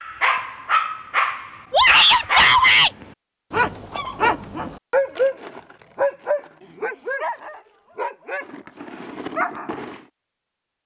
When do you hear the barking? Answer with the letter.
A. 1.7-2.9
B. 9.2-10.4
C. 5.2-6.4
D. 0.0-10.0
D.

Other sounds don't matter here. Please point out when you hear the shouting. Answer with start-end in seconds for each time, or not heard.
1.7-2.9.